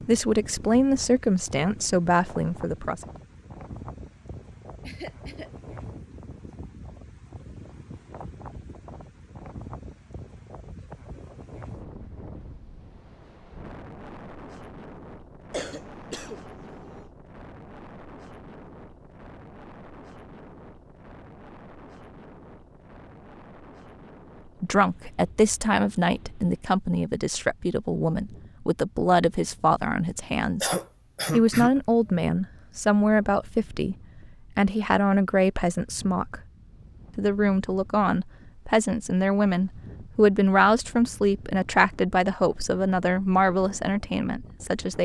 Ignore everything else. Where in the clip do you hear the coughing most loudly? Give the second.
31 s.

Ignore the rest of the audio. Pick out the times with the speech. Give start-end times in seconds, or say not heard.
0.1-3.0, 24.6-30.7, 31.3-34.0, 34.5-36.4, 37.1-45.0.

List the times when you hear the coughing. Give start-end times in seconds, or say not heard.
4.8-5.5, 15.5-17.1, 30.6-31.7.